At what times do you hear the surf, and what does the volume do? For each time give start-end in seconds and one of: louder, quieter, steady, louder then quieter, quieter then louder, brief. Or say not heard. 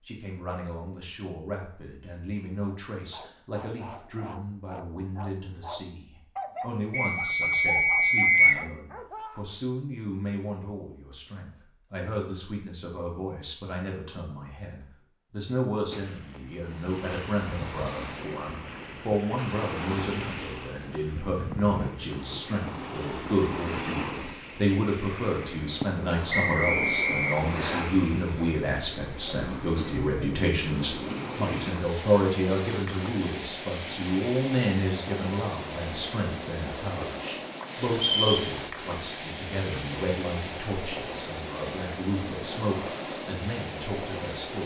15.9-44.6 steady.